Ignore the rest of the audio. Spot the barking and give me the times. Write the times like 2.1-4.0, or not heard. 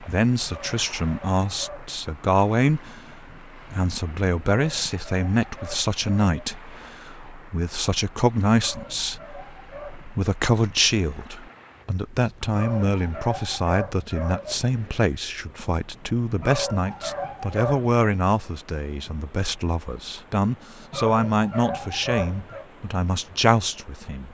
0.5-2.0, 4.5-6.3, 8.6-10.1, 12.5-14.6, 16.4-17.9, 20.9-22.6.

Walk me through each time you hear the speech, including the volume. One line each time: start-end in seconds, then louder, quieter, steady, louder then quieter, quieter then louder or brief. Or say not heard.
0.0-24.2 steady.